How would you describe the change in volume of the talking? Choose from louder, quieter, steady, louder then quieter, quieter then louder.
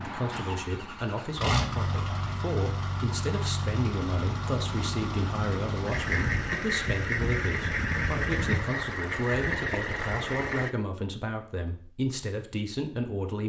steady.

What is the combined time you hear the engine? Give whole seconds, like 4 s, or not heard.
11 s.